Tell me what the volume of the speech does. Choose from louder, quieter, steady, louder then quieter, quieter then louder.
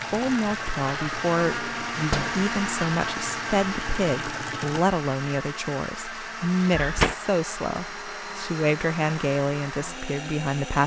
steady.